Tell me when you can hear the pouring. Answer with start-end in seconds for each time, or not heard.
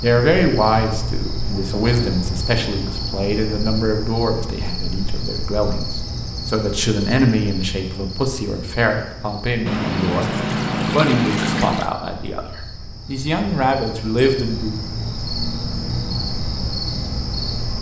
9.7-11.9.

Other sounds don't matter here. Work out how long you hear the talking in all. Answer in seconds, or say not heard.
15 s.